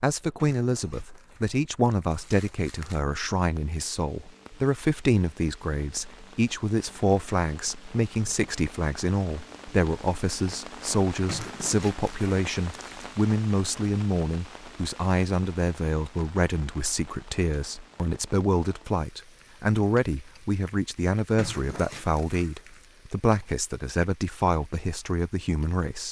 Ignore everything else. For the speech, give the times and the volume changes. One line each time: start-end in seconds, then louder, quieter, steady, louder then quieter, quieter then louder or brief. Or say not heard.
0.0-26.0 steady.